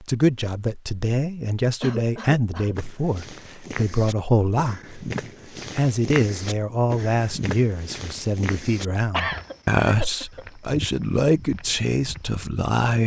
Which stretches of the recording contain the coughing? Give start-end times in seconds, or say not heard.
1.8-2.8, 9.1-10.4.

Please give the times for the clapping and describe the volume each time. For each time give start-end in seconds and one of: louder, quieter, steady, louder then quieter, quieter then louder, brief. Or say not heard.
not heard.